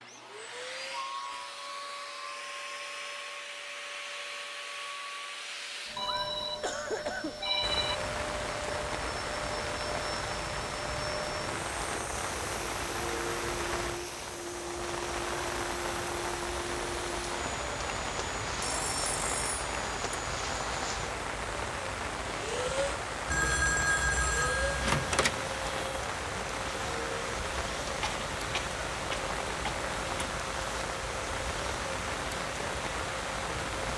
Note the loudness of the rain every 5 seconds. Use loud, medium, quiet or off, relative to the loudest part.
off, loud, loud, loud, loud, loud, loud.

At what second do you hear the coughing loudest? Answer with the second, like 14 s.
7 s.